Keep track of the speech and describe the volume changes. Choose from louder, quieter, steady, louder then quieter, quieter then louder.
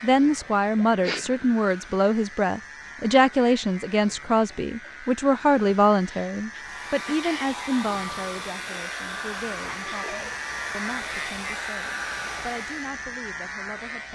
quieter.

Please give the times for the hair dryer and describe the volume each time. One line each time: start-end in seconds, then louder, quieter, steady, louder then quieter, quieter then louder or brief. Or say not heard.
6.5-12.8 steady.